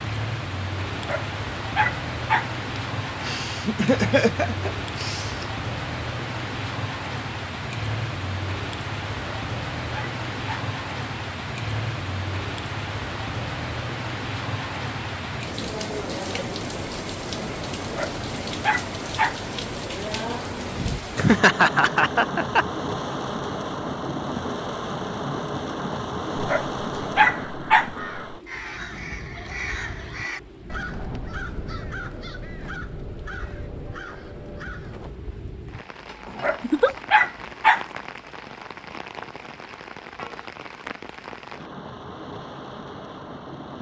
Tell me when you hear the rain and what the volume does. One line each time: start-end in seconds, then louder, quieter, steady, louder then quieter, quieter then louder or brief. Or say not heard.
0.0-43.7 quieter.